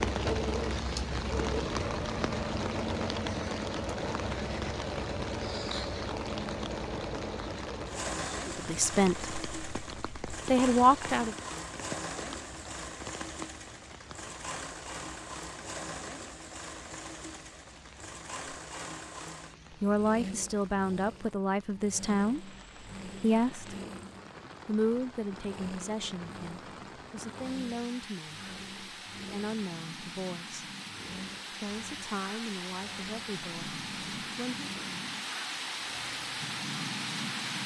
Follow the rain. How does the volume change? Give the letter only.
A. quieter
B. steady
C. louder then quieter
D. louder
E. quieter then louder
E.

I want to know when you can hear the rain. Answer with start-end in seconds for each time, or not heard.
0.0-37.6.